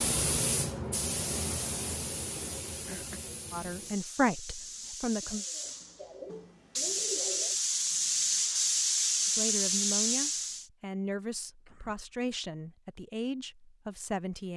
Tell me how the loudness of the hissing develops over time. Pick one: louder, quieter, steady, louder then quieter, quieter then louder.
quieter then louder.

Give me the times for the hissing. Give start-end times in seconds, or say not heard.
0.0-10.7.